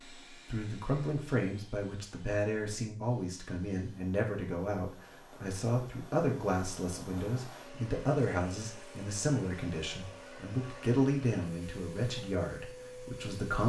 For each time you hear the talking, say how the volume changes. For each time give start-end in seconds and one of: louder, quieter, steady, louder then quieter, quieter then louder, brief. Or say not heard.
0.3-13.6 steady.